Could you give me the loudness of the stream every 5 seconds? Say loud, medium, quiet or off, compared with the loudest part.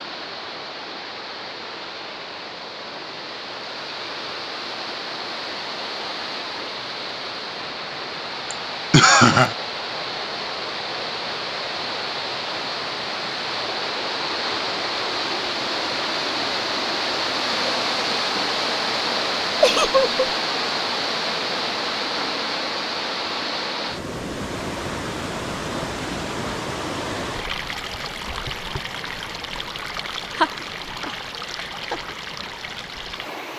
medium, medium, loud, loud, loud, medium, medium.